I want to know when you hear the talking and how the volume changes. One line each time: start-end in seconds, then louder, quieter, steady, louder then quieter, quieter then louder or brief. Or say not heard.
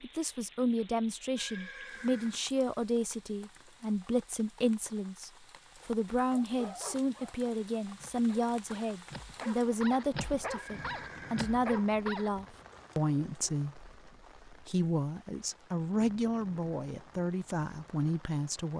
0.0-18.7 steady.